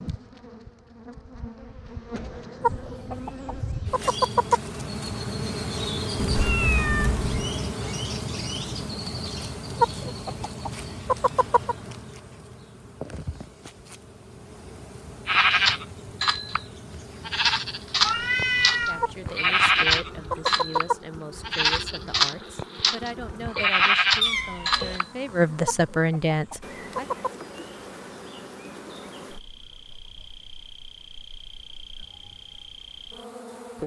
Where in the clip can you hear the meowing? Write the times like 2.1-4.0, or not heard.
6.2-7.5, 18.0-19.1, 24.2-25.0.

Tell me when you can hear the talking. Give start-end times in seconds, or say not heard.
18.7-27.1.